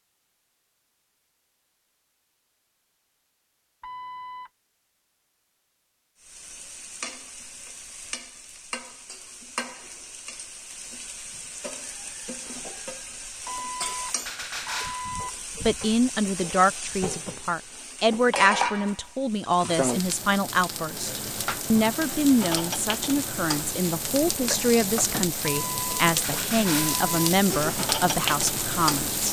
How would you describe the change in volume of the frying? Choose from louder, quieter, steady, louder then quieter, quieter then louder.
louder.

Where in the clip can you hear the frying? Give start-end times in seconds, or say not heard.
6.2-29.2.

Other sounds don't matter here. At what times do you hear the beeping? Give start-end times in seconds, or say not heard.
3.8-4.5, 13.4-15.3, 25.5-27.3.